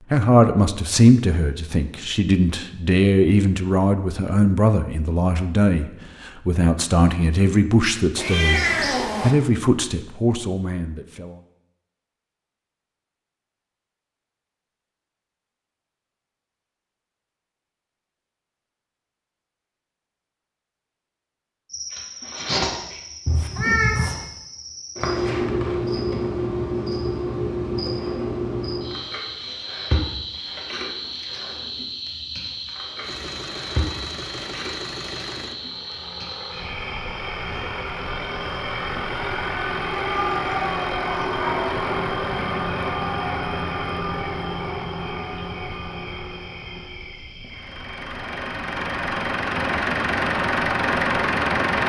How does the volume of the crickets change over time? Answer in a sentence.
The volume of the crickets goes down.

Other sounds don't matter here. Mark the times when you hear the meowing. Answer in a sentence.
The meowing can be heard from 8.2 to 9.3 s, from 23.2 to 24.2 s and from 40.0 to 41.8 s.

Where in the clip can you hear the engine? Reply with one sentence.
The engine can be heard from 33.0 to 51.8 s.